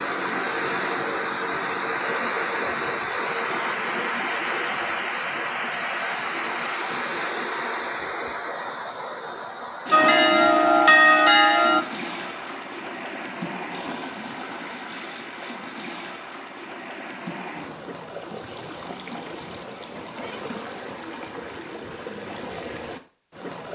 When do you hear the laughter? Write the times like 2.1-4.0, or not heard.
not heard.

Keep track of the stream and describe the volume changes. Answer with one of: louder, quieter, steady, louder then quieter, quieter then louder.
quieter.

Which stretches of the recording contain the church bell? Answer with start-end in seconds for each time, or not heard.
9.9-11.8.